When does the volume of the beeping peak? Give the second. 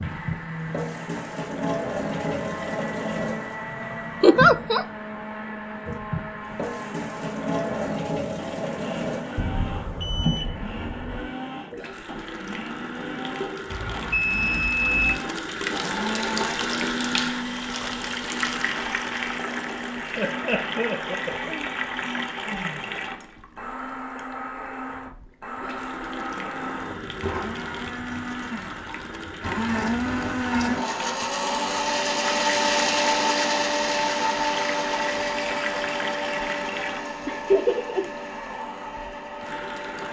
15 s.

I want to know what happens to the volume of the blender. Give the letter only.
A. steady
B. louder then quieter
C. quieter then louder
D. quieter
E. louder
E.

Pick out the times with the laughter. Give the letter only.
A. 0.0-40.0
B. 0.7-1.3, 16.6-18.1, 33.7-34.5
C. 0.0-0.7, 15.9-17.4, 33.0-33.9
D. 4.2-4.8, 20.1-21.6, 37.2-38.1
D.